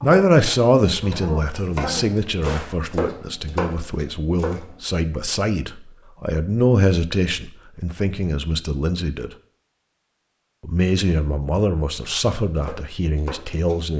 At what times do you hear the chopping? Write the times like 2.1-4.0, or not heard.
0.0-4.8, 12.4-13.8.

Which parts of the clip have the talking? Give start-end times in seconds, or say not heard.
0.0-9.3, 10.6-13.9.